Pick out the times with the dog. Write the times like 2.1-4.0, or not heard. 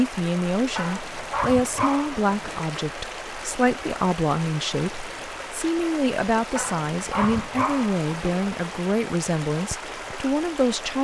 0.8-2.6, 6.5-8.4.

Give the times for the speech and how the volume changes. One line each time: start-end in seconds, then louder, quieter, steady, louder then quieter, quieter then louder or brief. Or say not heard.
0.0-10.9 steady.